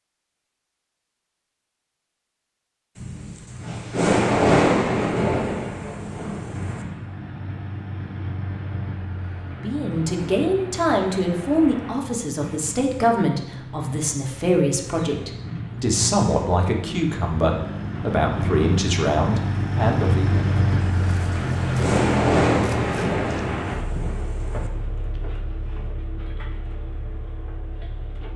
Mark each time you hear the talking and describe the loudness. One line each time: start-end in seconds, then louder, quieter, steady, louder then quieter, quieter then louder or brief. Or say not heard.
9.5-20.4 steady.